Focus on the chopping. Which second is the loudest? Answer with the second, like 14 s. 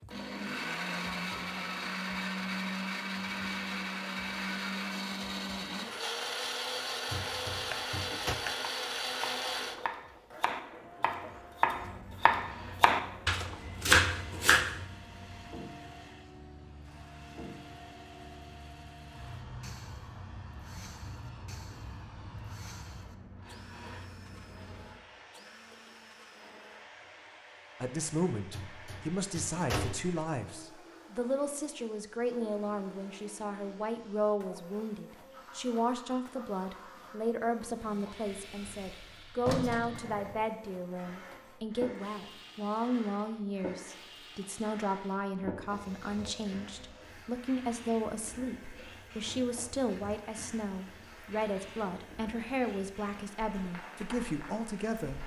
14 s.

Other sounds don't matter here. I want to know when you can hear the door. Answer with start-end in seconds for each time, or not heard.
7.1-8.3, 28.5-30.1, 38.2-40.5.